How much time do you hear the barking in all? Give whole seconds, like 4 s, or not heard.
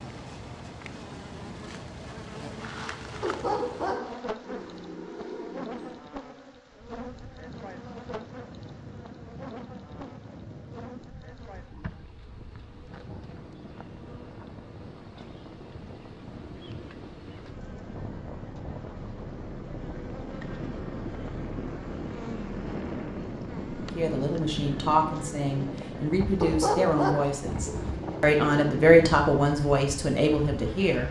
5 s.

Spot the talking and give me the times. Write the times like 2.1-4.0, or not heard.
23.9-31.0.